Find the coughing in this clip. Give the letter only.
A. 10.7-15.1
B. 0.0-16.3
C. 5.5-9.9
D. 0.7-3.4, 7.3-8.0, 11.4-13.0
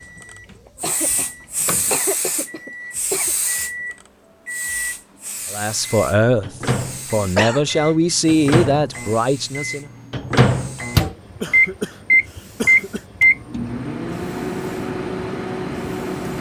D.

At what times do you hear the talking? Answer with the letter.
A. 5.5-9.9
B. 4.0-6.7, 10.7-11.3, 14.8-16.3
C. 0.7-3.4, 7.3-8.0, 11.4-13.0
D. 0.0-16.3
A.